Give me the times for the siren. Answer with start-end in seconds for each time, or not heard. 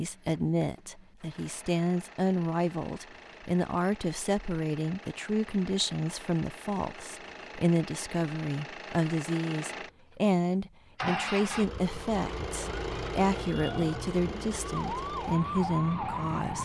12.7-16.6.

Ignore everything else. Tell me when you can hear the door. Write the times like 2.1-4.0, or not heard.
not heard.